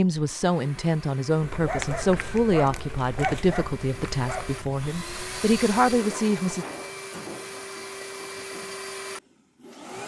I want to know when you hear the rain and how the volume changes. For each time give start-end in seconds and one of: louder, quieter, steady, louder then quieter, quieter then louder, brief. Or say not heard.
not heard.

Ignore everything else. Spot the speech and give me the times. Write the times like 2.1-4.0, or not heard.
0.0-6.7.